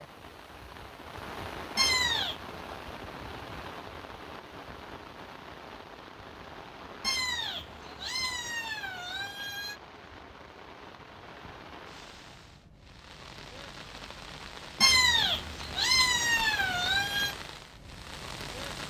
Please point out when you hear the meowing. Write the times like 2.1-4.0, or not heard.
1.8-2.4, 7.0-9.8, 14.8-17.4.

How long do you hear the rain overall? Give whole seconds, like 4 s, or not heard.
19 s.